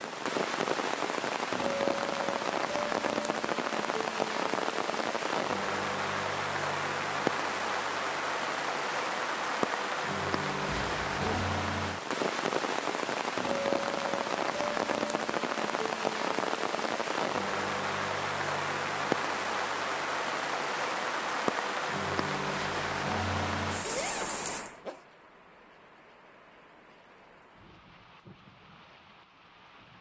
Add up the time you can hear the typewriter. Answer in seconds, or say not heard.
not heard.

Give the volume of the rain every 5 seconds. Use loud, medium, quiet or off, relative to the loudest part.
loud, loud, loud, loud, loud, quiet.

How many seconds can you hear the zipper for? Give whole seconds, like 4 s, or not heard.
2 s.